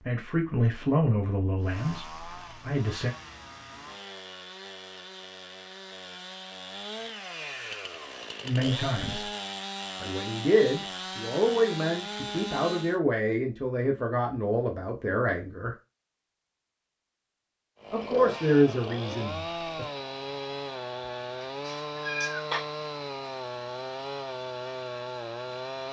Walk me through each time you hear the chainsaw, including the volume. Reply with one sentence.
You can hear the chainsaw from 1.6 to 13.0 s, getting louder; and from 17.8 to 25.8 s, at a steady volume.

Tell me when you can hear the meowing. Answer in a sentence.
You can hear the meowing from 21.4 to 22.7 s.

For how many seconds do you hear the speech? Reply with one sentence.
You can hear the speech for 12 seconds altogether.